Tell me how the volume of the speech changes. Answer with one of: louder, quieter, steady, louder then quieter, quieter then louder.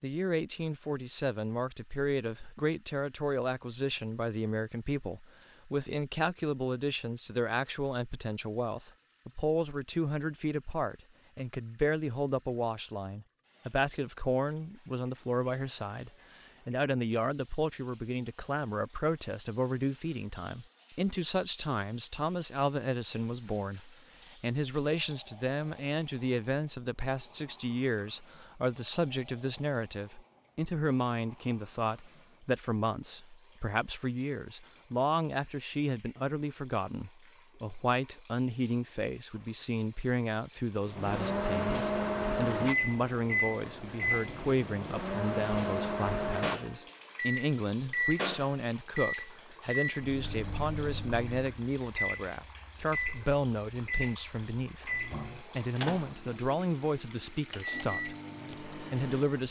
steady.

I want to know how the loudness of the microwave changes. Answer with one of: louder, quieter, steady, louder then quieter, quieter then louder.
quieter.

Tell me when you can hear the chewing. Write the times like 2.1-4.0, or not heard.
not heard.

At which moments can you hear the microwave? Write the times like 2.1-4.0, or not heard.
40.9-59.4.